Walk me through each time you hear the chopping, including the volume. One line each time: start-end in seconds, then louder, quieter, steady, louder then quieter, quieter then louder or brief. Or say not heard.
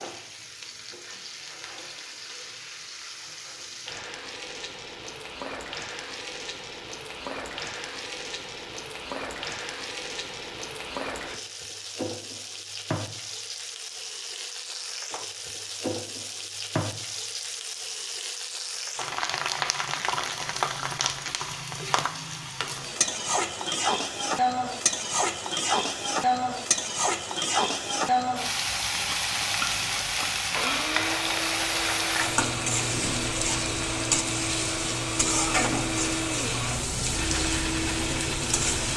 not heard.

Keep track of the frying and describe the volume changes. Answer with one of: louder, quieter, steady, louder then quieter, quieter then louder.
louder.